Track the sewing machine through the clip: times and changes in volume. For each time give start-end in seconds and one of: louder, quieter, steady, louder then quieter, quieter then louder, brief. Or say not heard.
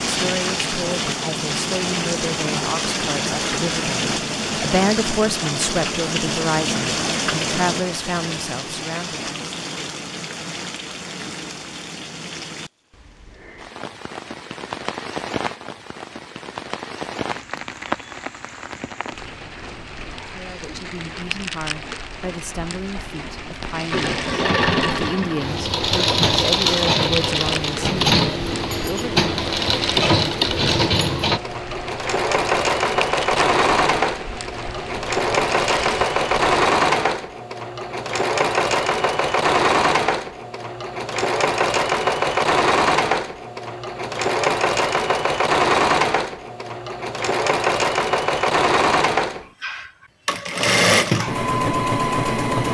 23.9-52.6 steady.